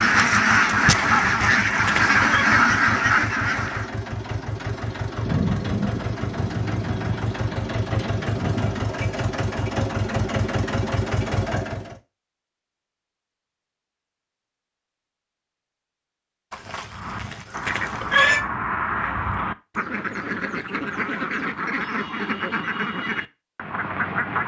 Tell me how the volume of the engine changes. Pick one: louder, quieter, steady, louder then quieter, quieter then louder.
louder.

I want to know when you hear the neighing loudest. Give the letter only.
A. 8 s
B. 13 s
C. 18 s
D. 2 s
C.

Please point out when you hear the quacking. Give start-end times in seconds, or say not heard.
0.0-3.9, 16.9-24.4.